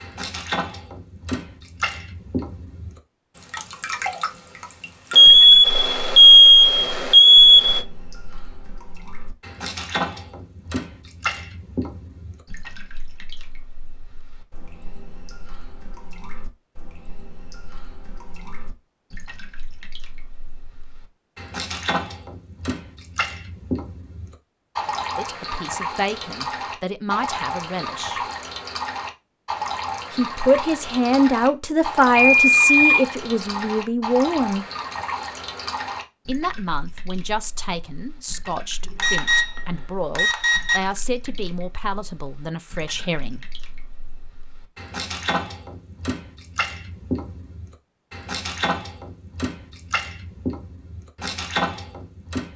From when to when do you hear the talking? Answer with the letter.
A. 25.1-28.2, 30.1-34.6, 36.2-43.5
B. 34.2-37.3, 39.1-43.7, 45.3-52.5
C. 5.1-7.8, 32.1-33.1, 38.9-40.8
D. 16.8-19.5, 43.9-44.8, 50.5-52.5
A.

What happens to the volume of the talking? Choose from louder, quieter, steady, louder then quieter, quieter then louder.
louder then quieter.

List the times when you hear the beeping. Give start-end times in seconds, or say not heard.
5.1-7.8, 32.1-33.1, 38.9-40.8.